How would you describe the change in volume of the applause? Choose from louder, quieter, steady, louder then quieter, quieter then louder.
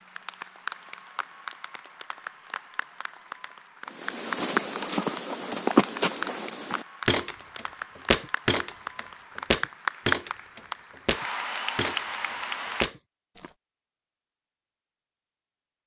louder.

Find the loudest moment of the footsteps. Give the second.
6 s.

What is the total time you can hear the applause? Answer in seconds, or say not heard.
13 s.